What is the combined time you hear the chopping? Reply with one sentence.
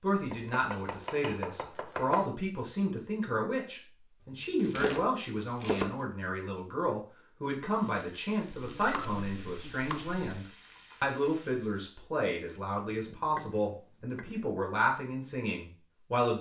You can hear the chopping for 7 seconds altogether.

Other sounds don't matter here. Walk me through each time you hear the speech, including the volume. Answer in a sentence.
The speech can be heard from 0.0 to 16.3 s, at a steady volume.